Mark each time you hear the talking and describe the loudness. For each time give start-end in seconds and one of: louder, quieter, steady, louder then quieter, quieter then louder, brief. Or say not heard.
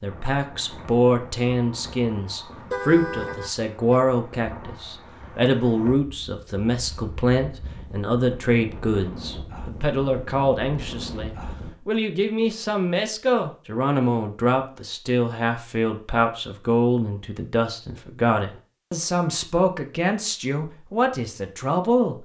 0.0-22.2 steady.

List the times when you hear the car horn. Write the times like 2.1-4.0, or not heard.
2.5-4.0.